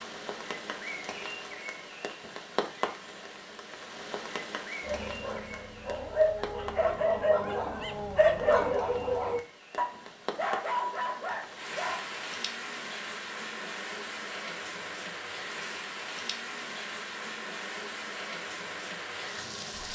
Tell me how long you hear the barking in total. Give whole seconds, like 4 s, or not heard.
7 s.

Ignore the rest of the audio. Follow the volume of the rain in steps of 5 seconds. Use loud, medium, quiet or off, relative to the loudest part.
loud, medium, loud, loud.